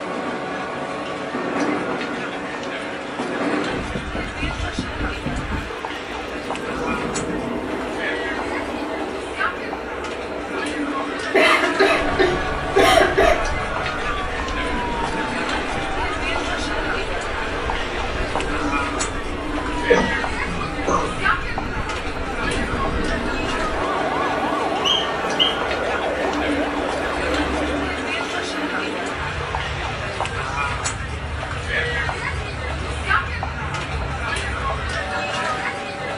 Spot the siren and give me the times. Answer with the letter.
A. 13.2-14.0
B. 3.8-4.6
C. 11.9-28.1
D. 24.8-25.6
C.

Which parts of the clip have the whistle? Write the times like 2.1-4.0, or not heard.
24.8-25.6.